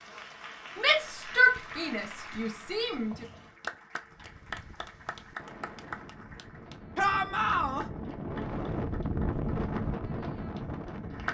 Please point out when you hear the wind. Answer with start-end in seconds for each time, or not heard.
4.0-11.2.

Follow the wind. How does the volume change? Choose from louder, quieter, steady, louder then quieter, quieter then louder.
louder.